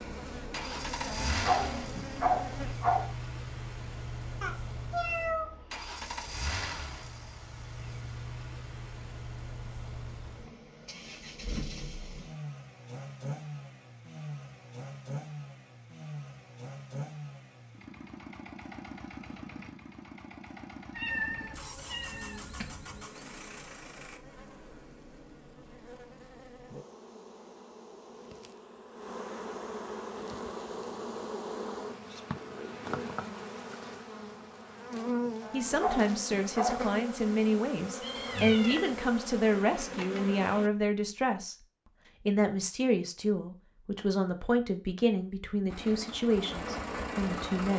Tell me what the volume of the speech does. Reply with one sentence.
The volume of the speech stays about the same.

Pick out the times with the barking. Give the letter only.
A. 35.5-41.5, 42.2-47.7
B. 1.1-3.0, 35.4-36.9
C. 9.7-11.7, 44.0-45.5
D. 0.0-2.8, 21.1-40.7
B.